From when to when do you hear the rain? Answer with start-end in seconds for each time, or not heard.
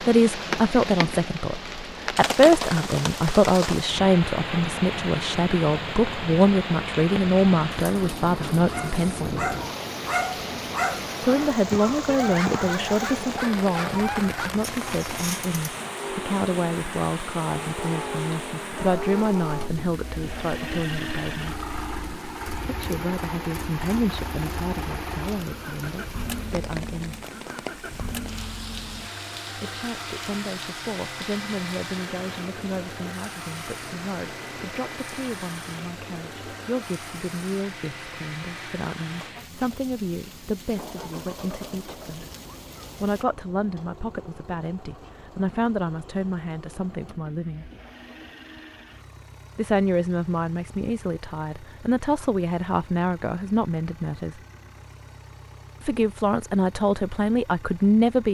0.0-43.2.